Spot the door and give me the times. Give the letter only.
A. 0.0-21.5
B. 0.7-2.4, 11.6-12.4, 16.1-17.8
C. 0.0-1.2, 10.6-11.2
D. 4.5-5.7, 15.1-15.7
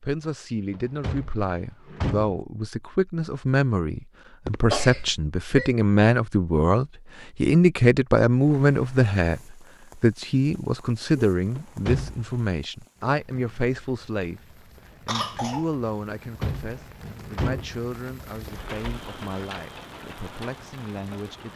B.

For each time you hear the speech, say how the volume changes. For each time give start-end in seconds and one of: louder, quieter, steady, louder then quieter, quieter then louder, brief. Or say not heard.
0.0-21.5 louder then quieter.